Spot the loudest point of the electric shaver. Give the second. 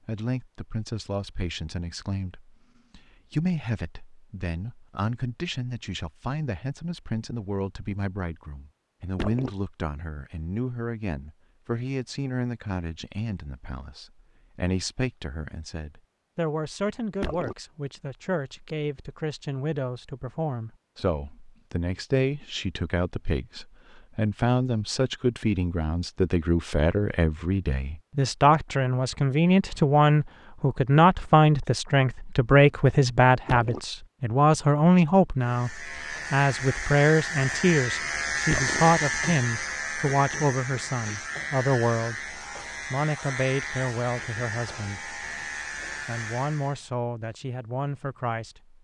39 s.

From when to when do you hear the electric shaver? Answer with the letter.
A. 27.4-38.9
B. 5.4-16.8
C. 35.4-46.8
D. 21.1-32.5
C.